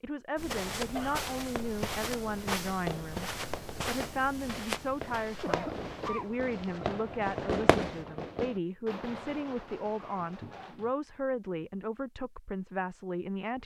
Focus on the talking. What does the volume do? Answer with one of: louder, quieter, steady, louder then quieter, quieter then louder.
steady.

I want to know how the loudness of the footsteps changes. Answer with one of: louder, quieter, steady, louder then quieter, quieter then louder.
quieter.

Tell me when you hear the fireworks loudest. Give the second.
8 s.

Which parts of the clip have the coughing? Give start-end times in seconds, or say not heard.
0.8-1.2, 5.2-6.3, 9.9-10.9.